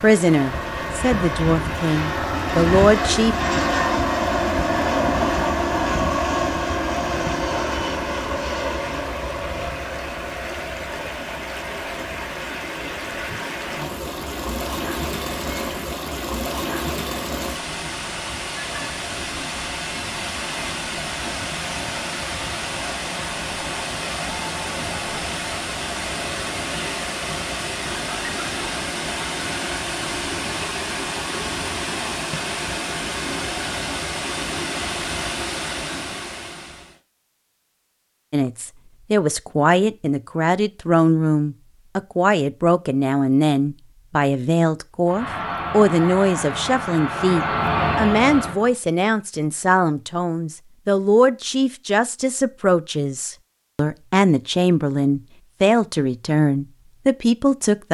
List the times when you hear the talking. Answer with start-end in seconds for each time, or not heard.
0.0-3.4, 38.3-57.8.